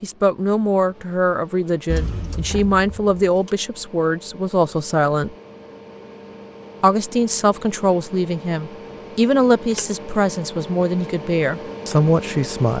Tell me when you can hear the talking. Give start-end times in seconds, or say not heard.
0.0-5.3, 6.8-12.7.